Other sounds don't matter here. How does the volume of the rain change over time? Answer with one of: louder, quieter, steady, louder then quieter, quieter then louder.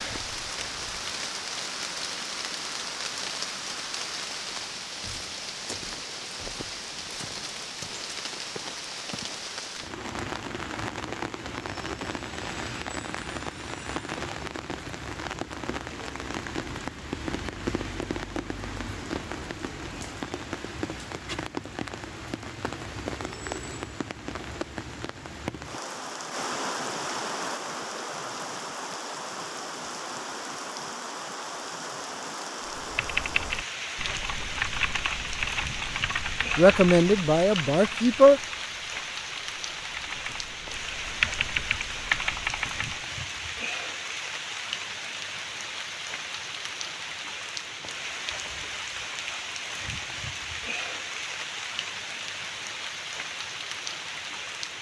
steady.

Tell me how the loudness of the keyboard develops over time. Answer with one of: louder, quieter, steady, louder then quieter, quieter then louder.
quieter then louder.